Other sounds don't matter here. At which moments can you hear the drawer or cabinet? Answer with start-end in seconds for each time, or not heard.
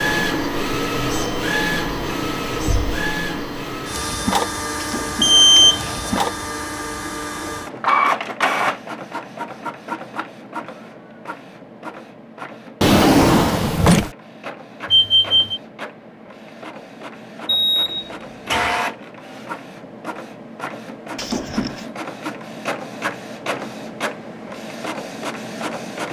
4.8-6.0, 12.8-14.1, 21.1-21.9.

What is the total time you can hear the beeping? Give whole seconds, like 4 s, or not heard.
3 s.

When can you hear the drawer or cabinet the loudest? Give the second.
13 s.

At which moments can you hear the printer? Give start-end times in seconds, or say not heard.
0.0-26.0.